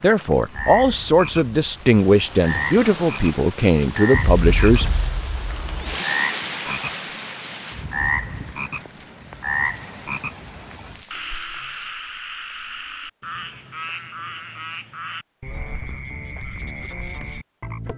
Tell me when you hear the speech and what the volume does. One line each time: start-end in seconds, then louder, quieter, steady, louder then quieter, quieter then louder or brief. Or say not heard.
0.0-5.0 steady.